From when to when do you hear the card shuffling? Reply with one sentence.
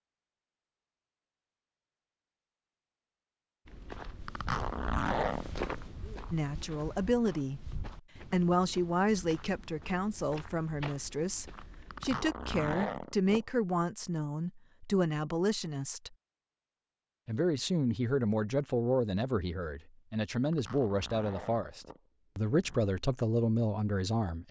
You can't hear the card shuffling here.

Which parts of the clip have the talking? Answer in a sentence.
The talking can be heard from 6.3 to 16.1 s and from 17.2 to 24.4 s.